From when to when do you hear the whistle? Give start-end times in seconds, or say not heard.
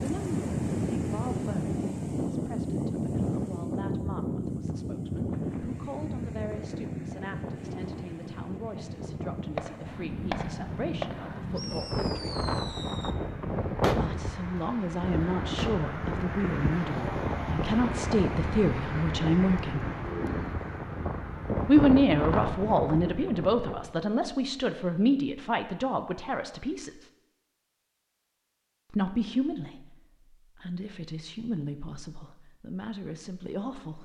not heard.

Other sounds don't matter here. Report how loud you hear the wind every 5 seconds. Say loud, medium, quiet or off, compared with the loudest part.
loud, medium, loud, loud, loud, off, off.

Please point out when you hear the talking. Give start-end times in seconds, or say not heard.
0.0-12.3, 13.9-19.9, 21.6-27.1, 28.9-29.9, 30.6-34.0.